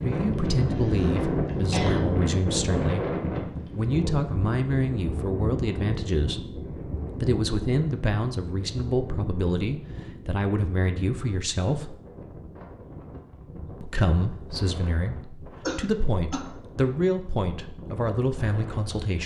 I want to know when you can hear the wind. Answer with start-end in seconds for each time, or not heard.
0.0-19.2.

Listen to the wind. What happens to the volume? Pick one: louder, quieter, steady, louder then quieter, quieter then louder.
quieter.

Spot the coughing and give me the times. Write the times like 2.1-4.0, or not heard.
0.7-2.1, 15.7-16.4.